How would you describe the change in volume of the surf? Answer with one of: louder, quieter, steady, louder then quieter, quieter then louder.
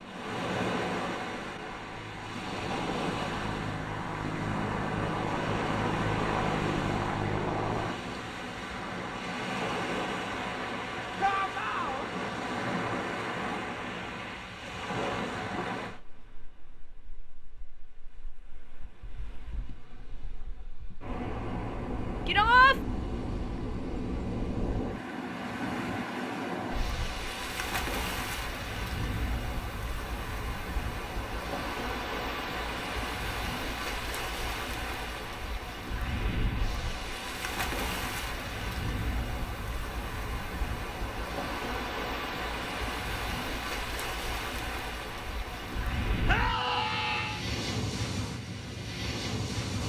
steady.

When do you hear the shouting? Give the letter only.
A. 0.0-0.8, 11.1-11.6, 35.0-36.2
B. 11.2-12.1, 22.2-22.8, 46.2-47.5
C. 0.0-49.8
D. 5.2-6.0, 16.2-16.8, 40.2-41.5
B.